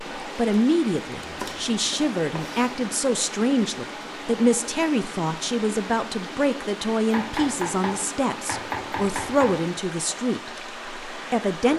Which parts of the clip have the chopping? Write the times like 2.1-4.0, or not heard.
1.2-2.8, 7.1-9.7.